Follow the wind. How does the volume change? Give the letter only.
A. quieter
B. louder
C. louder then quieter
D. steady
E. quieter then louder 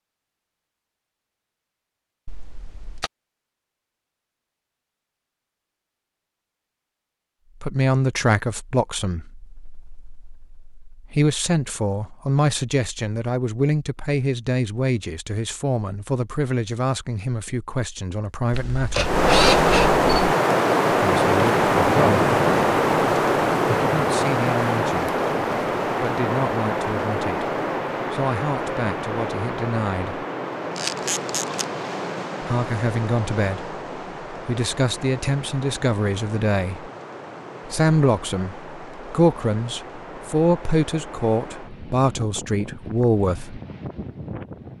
A.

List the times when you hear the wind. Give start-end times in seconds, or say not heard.
19.0-44.7.